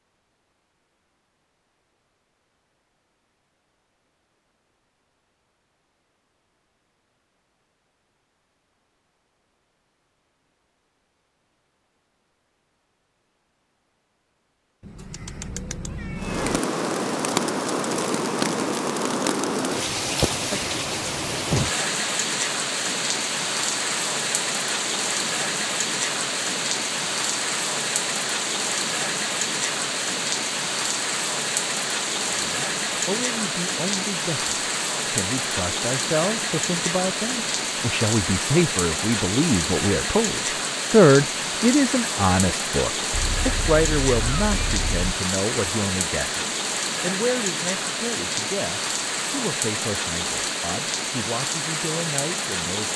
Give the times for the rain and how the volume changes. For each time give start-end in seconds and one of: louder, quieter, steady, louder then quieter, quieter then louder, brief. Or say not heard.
16.1-52.9 steady.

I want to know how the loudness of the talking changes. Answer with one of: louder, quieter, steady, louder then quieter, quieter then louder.
louder then quieter.